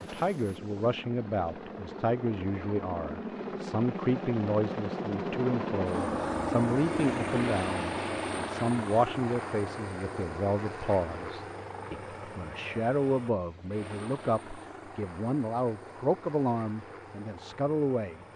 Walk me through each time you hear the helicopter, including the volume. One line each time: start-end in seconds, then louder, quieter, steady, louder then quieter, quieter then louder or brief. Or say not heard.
0.0-18.3 louder then quieter.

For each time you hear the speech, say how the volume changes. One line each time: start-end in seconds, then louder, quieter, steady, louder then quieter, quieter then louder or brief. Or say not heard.
0.0-18.2 steady.